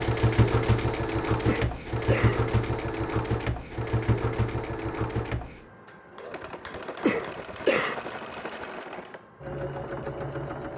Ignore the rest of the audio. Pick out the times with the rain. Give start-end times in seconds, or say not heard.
not heard.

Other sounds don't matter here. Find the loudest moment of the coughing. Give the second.
8 s.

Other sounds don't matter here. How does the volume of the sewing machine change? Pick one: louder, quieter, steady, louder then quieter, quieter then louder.
quieter.